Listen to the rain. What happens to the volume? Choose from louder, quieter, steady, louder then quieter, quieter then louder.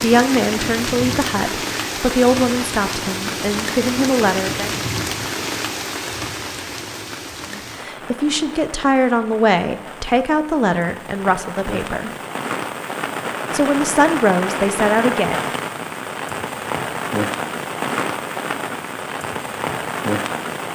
quieter then louder.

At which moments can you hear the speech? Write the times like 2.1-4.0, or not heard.
0.0-4.7, 7.5-12.1, 13.5-15.5.